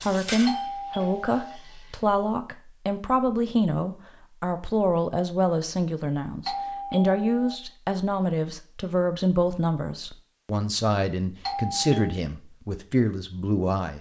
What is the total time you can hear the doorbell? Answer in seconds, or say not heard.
3 s.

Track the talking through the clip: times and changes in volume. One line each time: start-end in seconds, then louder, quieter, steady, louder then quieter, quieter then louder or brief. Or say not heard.
0.0-13.9 steady.